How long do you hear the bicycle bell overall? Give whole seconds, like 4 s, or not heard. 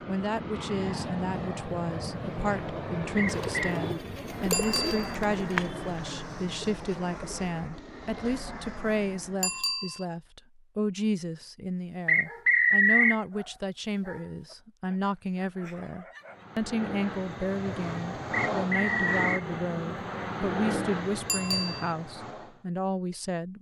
2 s.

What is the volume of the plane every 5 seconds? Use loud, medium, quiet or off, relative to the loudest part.
loud, medium, off, loud, loud.